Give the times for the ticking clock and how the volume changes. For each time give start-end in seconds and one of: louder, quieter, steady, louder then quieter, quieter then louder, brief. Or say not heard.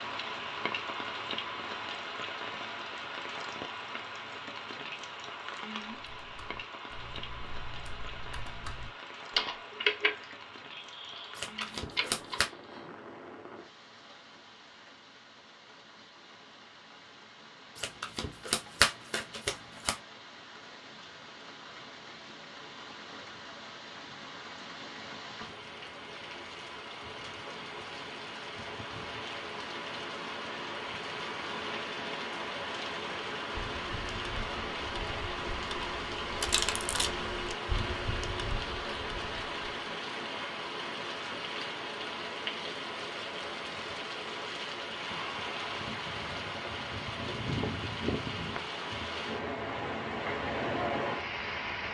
not heard.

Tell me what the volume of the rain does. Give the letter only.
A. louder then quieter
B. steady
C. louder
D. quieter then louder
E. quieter
D.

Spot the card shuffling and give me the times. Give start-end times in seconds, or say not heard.
11.3-12.5, 17.8-19.9, 36.4-37.1.